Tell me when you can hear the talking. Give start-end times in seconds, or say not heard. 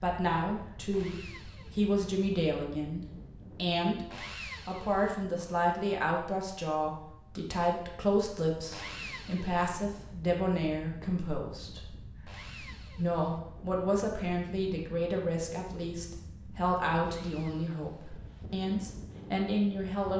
0.0-4.0, 4.7-11.8, 12.9-20.1.